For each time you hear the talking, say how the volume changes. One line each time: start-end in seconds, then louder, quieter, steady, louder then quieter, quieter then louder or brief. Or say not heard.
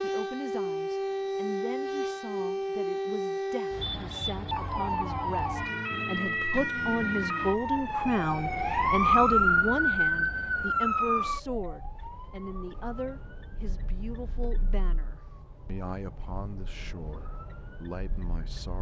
0.0-18.7 louder then quieter.